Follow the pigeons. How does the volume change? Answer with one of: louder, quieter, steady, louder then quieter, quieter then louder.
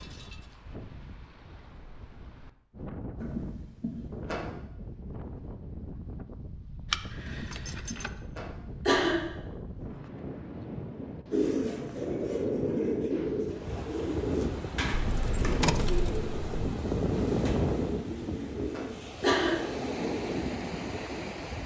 quieter.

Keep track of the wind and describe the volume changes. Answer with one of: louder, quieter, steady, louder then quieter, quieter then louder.
louder.